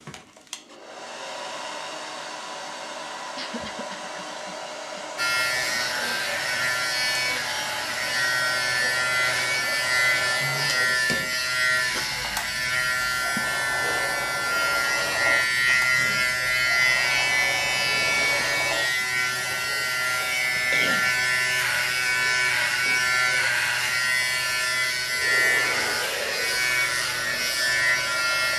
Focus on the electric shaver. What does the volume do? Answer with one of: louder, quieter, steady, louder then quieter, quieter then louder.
steady.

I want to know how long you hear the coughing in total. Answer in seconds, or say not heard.
3 s.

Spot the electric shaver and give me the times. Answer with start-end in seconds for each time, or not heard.
5.2-28.5.